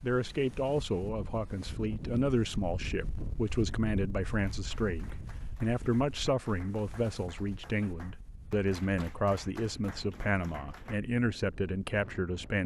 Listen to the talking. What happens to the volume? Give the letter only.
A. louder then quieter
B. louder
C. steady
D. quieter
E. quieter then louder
C.